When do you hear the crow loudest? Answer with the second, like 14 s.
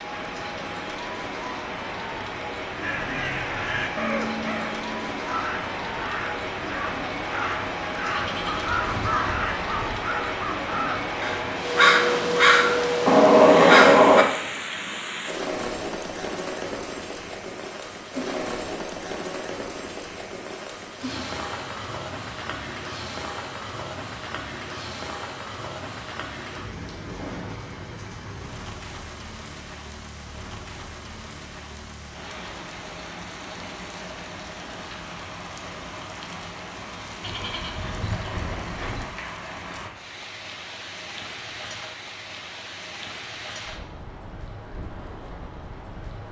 14 s.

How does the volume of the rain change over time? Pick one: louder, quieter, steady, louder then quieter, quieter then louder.
quieter.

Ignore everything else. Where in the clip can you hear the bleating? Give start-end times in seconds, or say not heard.
8.2-10.0, 37.2-39.0.